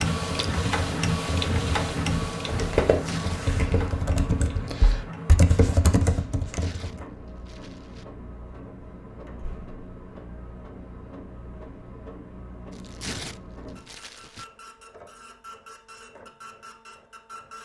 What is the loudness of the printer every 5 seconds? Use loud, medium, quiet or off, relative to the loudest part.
loud, quiet, quiet, quiet.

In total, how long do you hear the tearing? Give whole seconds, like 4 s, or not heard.
4 s.